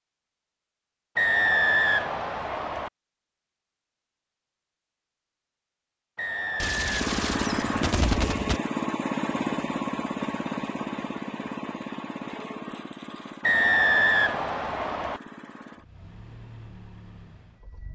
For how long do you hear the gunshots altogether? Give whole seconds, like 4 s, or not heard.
2 s.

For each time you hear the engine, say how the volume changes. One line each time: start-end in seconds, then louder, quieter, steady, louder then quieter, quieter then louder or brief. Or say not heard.
7.0-17.9 quieter.